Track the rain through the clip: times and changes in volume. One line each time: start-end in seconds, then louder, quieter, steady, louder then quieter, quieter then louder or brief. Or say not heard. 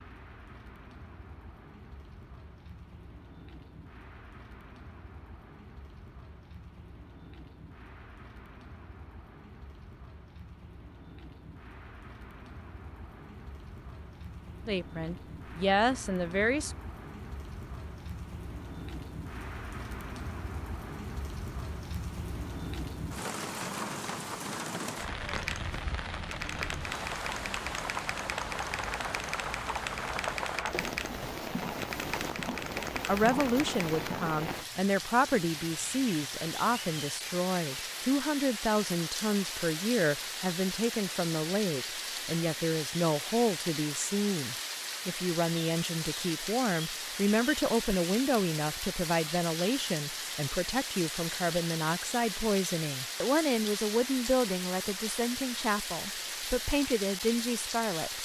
0.0-58.2 louder.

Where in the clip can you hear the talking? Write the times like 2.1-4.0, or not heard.
14.7-16.8, 33.0-58.2.